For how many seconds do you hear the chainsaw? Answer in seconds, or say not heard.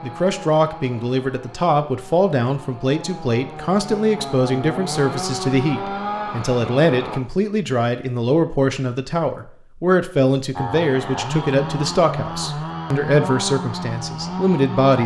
12 s.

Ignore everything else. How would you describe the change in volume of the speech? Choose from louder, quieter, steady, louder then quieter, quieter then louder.
steady.